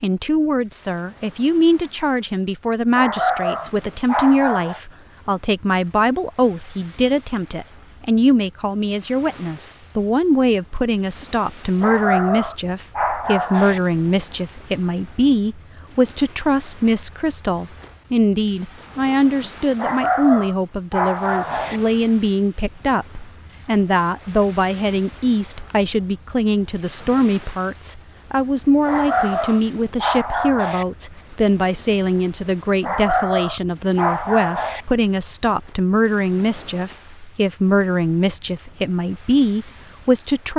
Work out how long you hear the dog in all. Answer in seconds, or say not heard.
10 s.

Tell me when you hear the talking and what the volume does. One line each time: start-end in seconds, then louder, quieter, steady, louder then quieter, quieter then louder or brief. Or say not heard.
0.0-40.5 steady.